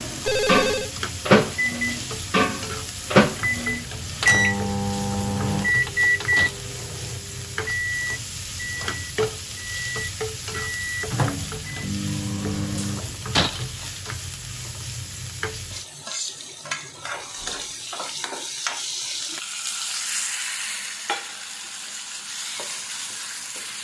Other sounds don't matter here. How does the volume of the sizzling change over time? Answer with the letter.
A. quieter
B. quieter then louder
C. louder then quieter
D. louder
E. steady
E.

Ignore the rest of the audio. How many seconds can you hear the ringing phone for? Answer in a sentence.
You can hear the ringing phone for 2 seconds altogether.